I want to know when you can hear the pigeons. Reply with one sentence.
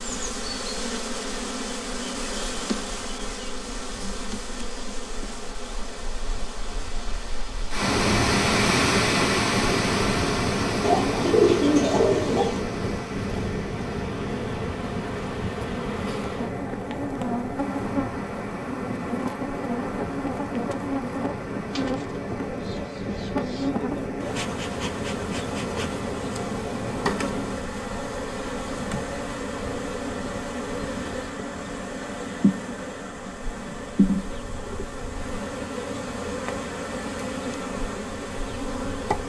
You can hear the pigeons from 10.8 to 12.7 s and from 21.7 to 23.7 s.